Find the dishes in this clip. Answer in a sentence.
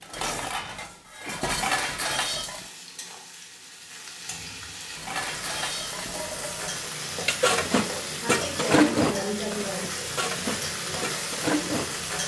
The dishes can be heard from 0.0 to 2.6 s and from 5.0 to 12.1 s.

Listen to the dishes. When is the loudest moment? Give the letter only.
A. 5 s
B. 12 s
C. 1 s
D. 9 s
D.